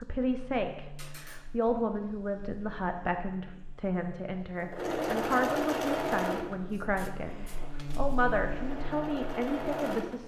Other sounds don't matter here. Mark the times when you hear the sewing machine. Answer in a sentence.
The sewing machine can be heard from 4.6 to 10.2 s.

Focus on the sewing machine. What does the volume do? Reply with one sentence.
The volume of the sewing machine goes down, then up.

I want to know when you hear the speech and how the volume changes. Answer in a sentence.
You can hear the speech from 0.0 to 10.2 s, at a steady volume.